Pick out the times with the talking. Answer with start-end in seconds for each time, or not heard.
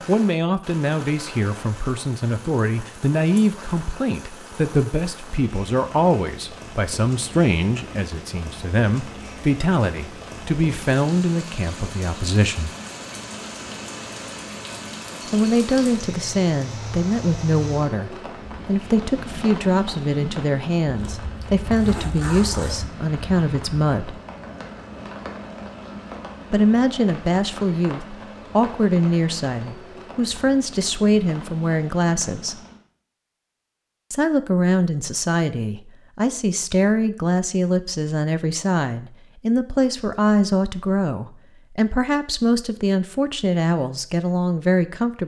0.1-12.7, 15.3-24.2, 26.5-32.6, 34.1-45.2.